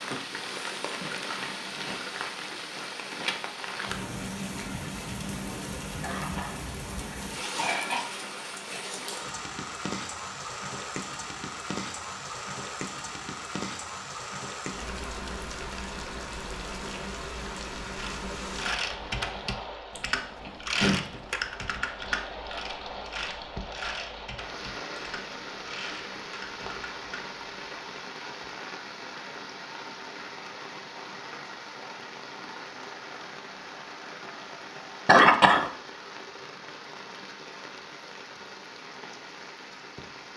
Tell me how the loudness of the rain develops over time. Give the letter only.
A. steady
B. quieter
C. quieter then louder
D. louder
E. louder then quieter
B.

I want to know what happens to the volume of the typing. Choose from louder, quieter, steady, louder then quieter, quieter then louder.
quieter.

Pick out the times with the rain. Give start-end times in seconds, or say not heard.
0.0-40.3.